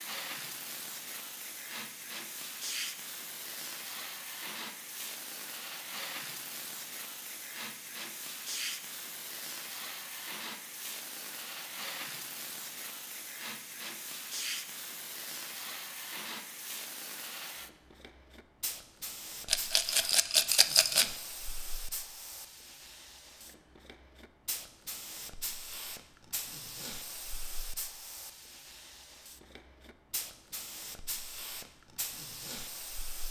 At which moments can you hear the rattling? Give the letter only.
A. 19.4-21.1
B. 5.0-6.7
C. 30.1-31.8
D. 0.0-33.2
A.